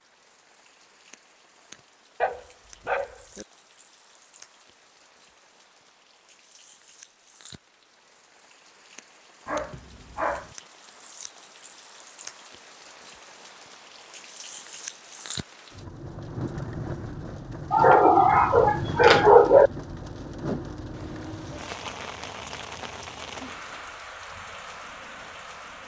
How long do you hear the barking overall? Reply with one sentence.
The barking can be heard for 4 seconds in total.